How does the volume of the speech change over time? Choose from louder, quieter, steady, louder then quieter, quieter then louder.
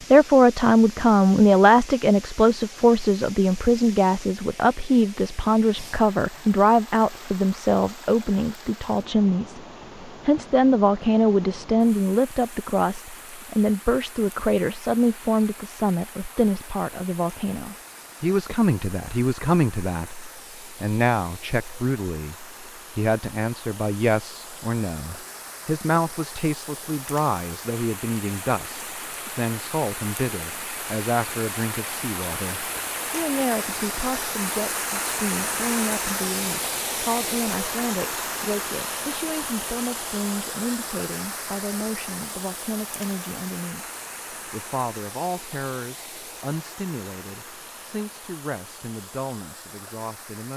quieter.